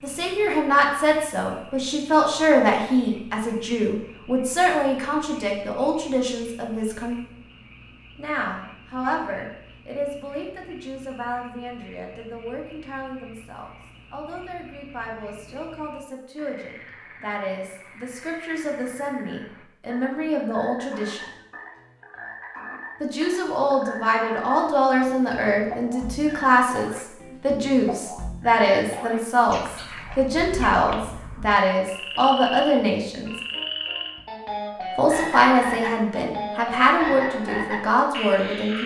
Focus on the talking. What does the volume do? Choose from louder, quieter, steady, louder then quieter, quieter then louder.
quieter then louder.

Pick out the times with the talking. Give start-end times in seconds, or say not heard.
0.0-7.2, 8.2-21.3, 23.0-33.3, 35.0-38.8.